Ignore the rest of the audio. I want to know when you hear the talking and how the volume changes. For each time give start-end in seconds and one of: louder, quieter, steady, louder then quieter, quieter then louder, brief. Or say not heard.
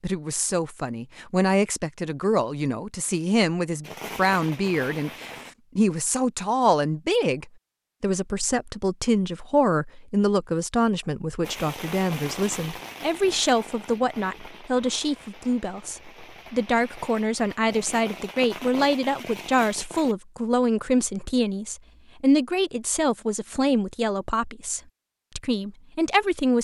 0.0-26.5 steady.